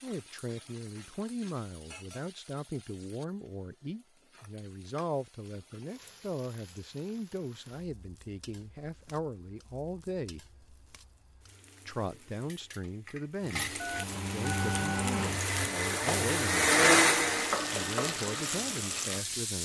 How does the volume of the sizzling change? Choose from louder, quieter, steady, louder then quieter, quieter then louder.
quieter then louder.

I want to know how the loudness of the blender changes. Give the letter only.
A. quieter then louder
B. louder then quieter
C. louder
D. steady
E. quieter
B.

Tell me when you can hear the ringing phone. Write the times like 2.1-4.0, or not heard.
13.8-15.1.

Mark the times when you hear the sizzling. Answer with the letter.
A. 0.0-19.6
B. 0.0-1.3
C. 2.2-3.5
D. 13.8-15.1
A.